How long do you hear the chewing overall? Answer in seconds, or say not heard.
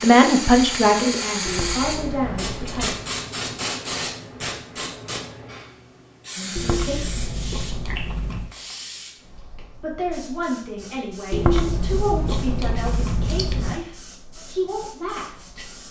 6 s.